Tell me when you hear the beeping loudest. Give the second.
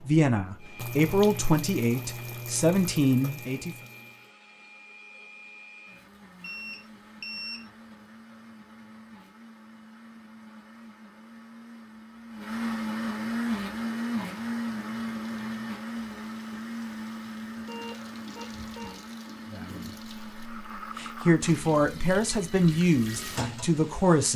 7 s.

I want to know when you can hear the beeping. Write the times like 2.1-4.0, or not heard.
6.4-7.7, 17.6-19.0.